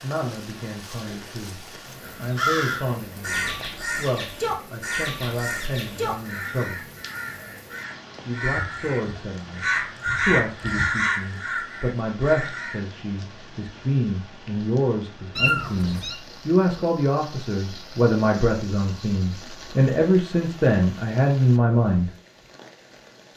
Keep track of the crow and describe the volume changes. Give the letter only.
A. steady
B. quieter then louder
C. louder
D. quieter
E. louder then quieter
B.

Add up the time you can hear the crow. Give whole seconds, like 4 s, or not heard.
11 s.